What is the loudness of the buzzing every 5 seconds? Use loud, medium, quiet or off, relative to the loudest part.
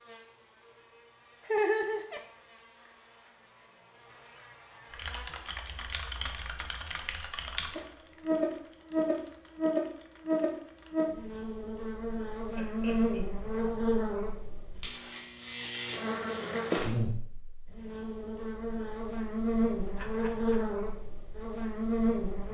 quiet, loud, loud, loud, loud.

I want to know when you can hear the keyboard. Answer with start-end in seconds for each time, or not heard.
4.9-11.1.